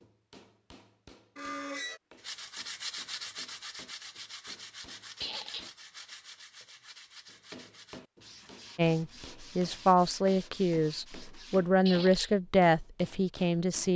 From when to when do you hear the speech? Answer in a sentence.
The speech can be heard from 8.8 to 13.9 s.